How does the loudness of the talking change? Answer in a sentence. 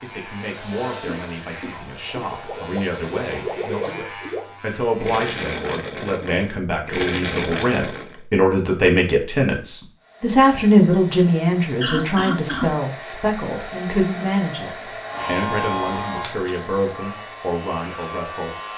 The loudness of the talking goes up, then down.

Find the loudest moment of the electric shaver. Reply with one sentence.
The loudest moment of the electric shaver is at 16 seconds.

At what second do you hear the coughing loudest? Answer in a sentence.
The loudest moment of the coughing is at 12 seconds.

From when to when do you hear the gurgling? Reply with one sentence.
The gurgling can be heard from 2.2 to 8.2 s.